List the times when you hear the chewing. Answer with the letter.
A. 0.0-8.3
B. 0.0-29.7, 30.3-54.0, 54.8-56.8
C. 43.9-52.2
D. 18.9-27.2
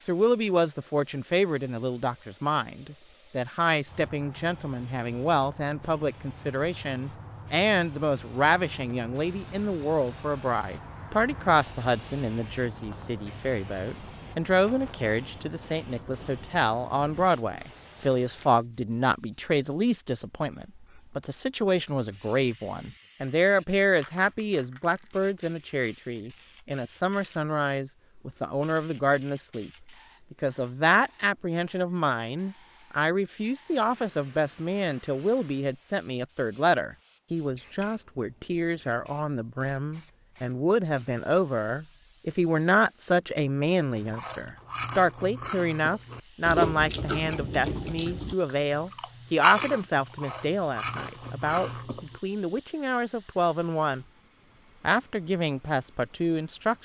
C.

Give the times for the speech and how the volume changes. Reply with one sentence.
You can hear the speech from 0.0 to 29.7 s, at a steady volume; from 30.3 to 54.0 s, at a steady volume; and briefly from 54.8 to 56.8 s.